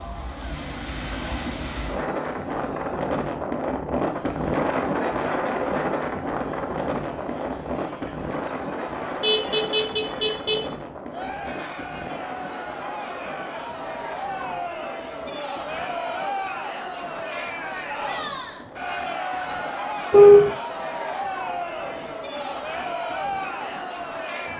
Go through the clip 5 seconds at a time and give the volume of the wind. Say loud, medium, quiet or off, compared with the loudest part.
loud, loud, medium, quiet, quiet.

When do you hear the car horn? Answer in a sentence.
The car horn can be heard from 9.2 to 10.7 s and from 20.1 to 20.6 s.